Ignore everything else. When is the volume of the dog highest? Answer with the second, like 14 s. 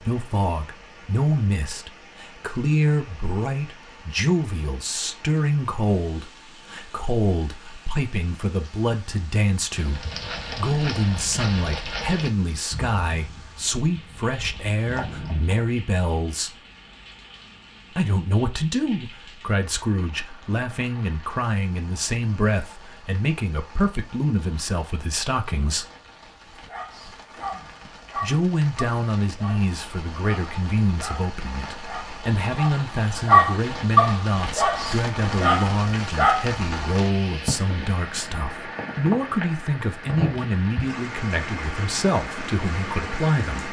33 s.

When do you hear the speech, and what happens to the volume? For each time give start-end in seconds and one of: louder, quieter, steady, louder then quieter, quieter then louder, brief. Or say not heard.
0.0-16.6 steady
17.9-25.9 steady
28.1-43.6 steady.